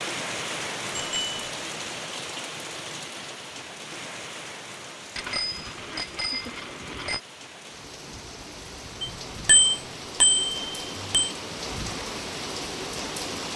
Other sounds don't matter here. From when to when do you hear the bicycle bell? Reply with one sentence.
The bicycle bell can be heard from 0.9 to 1.4 s, from 5.2 to 7.2 s and from 9.0 to 11.3 s.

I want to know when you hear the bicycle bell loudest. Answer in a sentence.
The loudest moment of the bicycle bell is at 10 seconds.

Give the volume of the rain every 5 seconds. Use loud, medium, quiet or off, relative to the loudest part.
loud, medium, loud.